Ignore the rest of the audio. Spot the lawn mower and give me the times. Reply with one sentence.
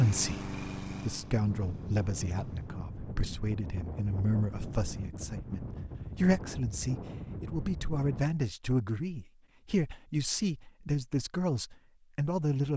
You can hear the lawn mower from 0.0 to 2.8 s.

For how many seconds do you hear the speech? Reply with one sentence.
The speech can be heard for 13 seconds in total.